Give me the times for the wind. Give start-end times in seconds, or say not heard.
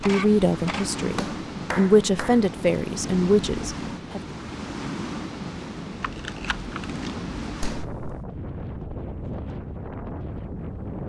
0.0-11.0.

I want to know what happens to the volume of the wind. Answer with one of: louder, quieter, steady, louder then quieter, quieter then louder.
steady.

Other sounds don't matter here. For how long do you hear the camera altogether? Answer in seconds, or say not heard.
2 s.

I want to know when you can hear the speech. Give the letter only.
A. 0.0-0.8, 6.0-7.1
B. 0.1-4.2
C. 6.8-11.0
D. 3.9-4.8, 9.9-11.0
B.